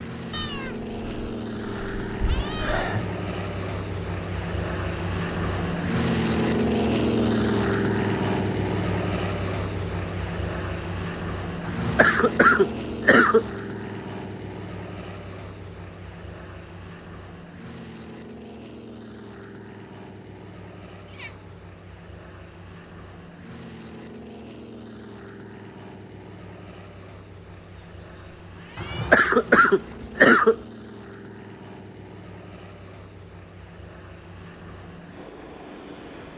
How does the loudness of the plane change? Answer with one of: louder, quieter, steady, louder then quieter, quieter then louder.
quieter.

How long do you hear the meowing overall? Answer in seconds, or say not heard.
5 s.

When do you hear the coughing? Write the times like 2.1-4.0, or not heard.
11.7-13.4, 28.8-30.6.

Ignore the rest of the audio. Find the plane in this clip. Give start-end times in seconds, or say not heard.
0.0-36.3.